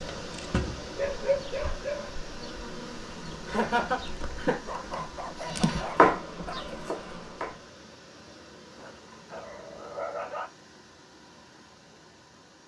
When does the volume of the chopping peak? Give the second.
6 s.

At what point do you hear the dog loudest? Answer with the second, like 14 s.
1 s.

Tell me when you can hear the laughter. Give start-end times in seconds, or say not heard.
3.5-4.5.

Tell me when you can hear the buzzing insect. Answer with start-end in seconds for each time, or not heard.
0.0-7.5.